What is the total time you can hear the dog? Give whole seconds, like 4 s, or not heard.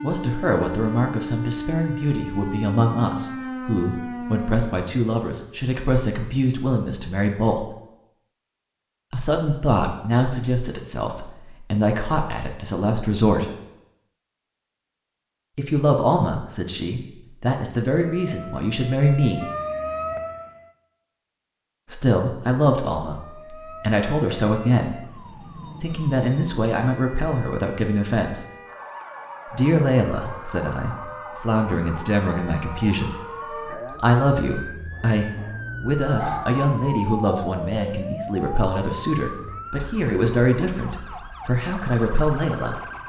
2 s.